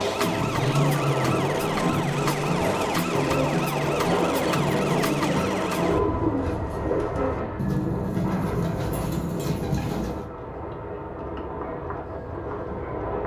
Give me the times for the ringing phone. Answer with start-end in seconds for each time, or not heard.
not heard.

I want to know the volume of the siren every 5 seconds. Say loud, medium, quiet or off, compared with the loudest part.
loud, medium, quiet.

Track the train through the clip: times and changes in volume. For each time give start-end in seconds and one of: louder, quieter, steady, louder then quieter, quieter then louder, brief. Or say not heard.
0.0-13.2 quieter.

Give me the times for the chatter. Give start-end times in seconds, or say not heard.
not heard.